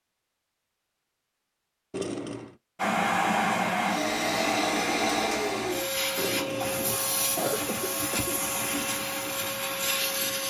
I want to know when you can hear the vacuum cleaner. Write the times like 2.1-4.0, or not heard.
2.8-10.4.